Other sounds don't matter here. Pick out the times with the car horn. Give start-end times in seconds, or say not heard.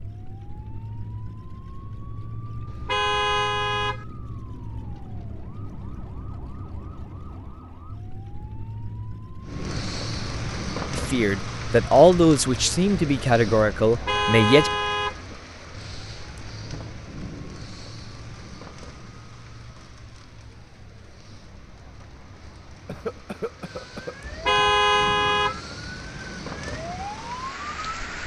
2.6-4.0, 13.8-15.2, 24.2-25.6.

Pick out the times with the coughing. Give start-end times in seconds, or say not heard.
22.9-24.1.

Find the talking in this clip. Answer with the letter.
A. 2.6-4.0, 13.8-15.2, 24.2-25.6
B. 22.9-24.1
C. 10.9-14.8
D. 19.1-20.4
C.